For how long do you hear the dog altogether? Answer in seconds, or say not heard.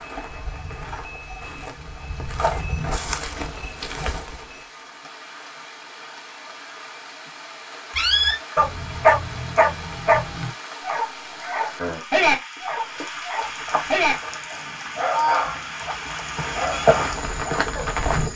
10 s.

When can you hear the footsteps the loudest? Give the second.
17 s.